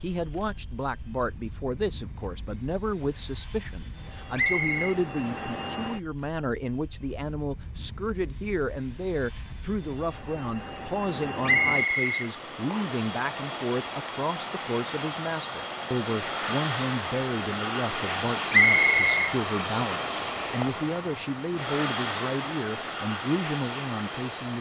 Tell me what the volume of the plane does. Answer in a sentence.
The loudness of the plane goes up.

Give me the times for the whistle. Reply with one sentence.
The whistle can be heard from 4.3 to 5.0 s, from 11.4 to 13.0 s and from 18.5 to 19.1 s.